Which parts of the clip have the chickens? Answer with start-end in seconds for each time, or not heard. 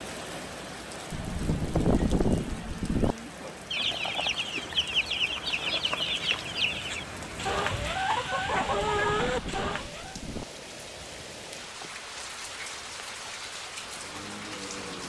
3.7-10.2.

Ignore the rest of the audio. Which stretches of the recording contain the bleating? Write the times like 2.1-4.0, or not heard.
1.1-3.1, 8.6-10.4.